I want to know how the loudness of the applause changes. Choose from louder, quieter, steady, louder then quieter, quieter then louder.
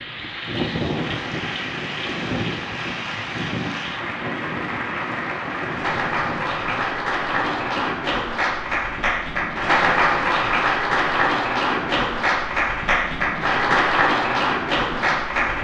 louder.